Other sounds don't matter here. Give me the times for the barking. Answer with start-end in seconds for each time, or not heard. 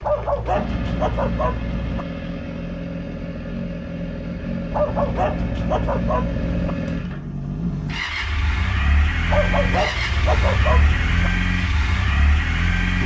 0.0-2.0, 4.7-6.8, 9.2-11.3.